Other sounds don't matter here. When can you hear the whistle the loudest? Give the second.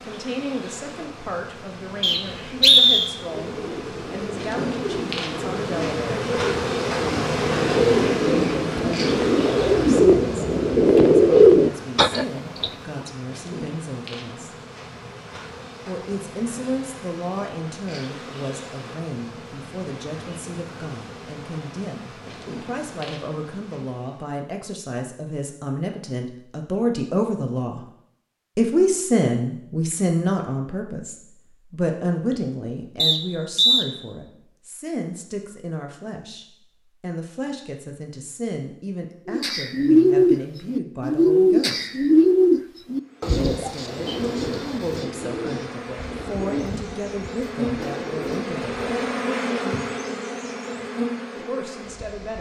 3 s.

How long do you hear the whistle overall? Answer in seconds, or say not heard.
2 s.